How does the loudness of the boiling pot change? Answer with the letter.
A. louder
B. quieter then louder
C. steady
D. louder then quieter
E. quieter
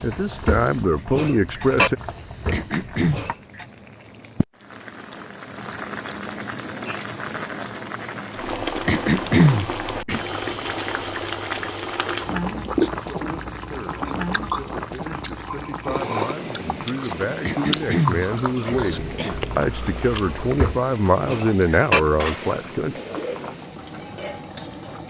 D.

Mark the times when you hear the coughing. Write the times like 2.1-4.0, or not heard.
2.5-3.2, 8.8-10.2, 17.4-19.4.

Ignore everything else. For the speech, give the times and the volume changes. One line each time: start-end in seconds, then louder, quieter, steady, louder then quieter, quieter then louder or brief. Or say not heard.
0.0-1.9 brief
12.9-22.9 louder.